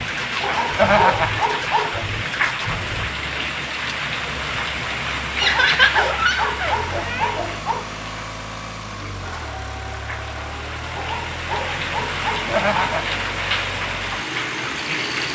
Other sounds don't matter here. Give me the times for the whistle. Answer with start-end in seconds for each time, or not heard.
not heard.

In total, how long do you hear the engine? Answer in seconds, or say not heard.
15 s.